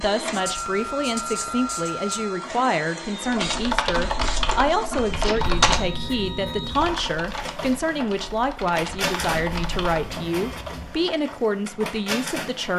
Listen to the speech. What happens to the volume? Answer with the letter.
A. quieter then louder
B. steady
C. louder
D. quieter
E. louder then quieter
B.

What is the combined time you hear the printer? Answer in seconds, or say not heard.
13 s.